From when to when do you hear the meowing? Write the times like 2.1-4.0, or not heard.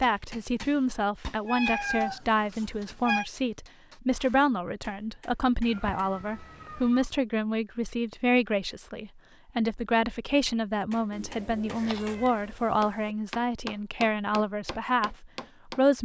1.4-3.2, 5.6-7.0, 11.1-13.2.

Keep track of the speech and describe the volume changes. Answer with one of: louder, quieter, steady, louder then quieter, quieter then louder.
steady.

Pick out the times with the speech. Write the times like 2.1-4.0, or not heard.
0.0-16.0.